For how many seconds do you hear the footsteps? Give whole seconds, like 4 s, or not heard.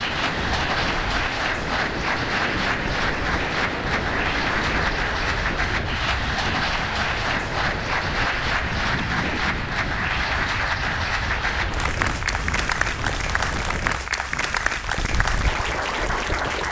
not heard.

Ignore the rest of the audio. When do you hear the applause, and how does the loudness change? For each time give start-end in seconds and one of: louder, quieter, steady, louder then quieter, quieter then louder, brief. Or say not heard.
0.0-16.6 steady.